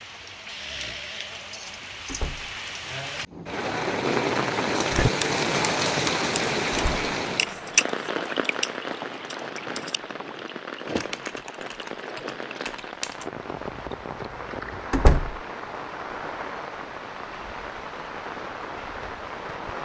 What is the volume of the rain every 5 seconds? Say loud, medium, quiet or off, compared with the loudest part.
loud, loud, medium, medium.